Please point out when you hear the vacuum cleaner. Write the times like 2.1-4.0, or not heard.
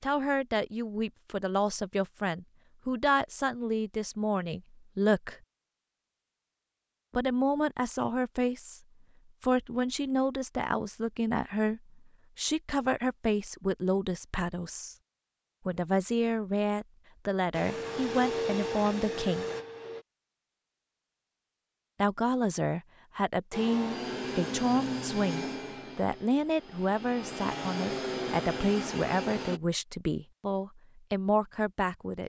17.5-20.1, 23.5-29.6.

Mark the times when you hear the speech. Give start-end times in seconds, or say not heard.
0.0-5.3, 7.1-8.8, 9.4-14.9, 15.7-19.4, 22.0-32.2.